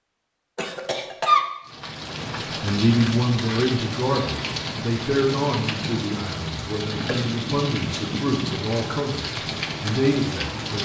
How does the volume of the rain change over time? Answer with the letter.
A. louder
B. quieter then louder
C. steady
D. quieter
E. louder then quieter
C.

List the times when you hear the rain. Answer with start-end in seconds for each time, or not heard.
1.6-10.8.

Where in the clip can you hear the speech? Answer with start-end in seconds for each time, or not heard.
2.6-10.8.